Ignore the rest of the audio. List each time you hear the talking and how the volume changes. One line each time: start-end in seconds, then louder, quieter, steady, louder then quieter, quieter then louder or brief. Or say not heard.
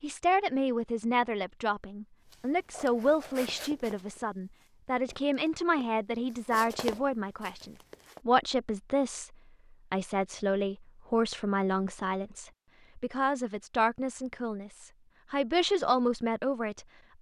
0.0-9.3 steady
9.9-17.1 quieter then louder.